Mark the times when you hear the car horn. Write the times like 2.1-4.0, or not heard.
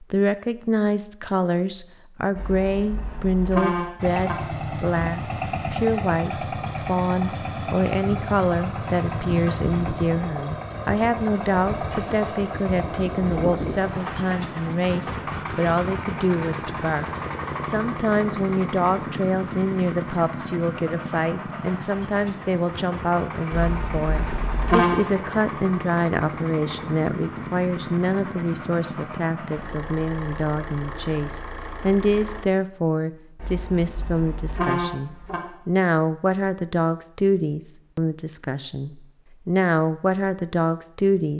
2.4-4.3, 23.5-25.0, 33.4-35.4.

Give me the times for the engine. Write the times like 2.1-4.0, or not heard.
4.0-32.5.